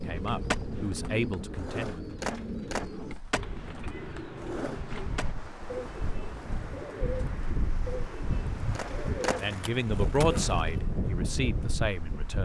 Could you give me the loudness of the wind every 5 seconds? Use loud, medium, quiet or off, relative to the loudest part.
medium, medium, loud.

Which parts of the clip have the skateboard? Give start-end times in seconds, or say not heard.
0.0-5.5, 8.8-10.7.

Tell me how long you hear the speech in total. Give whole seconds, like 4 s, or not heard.
5 s.